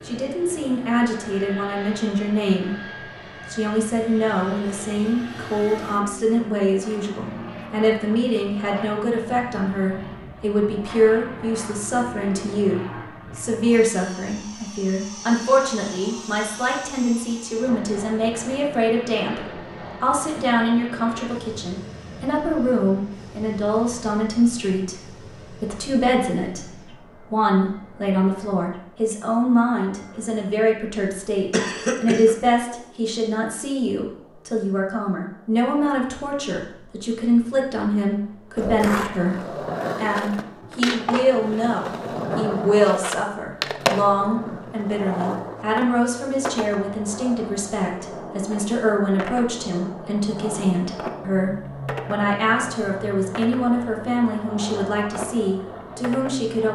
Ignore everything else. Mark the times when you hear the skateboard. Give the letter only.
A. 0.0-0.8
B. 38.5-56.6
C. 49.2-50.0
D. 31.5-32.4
B.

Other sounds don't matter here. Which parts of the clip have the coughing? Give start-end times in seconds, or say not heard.
31.5-32.4.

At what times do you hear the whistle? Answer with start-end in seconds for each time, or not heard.
not heard.